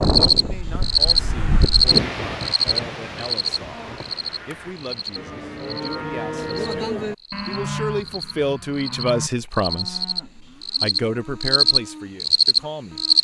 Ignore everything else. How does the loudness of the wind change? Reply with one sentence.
The volume of the wind goes up, then down.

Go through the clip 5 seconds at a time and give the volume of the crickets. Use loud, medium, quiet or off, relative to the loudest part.
loud, quiet, loud.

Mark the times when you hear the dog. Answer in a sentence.
You can't hear the dog here.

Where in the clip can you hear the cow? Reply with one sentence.
The cow can be heard from 3.6 to 13.1 s.